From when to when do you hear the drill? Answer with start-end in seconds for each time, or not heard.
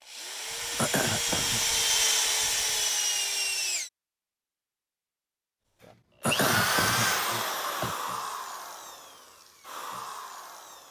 0.0-3.9, 6.2-10.8.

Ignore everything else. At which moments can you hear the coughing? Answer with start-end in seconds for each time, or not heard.
0.8-1.6, 6.2-8.0.